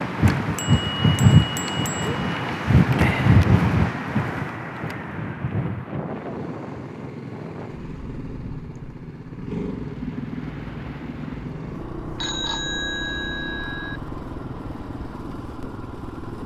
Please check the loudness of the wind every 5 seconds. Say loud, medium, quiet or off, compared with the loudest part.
loud, quiet, quiet, quiet.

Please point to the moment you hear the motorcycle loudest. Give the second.
10 s.